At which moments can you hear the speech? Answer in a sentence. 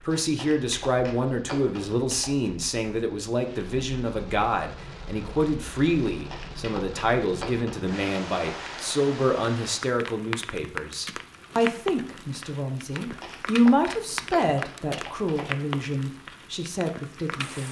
The speech can be heard from 0.0 to 17.6 s.